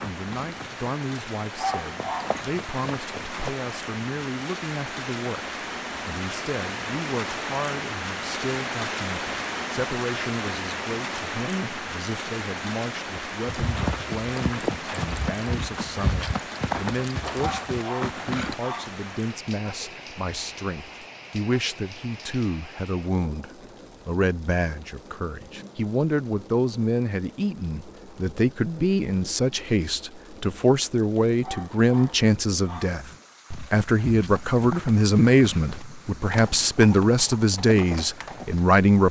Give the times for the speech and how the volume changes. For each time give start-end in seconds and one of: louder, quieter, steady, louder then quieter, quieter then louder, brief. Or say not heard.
0.0-39.0 louder.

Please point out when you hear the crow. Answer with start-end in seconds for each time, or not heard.
not heard.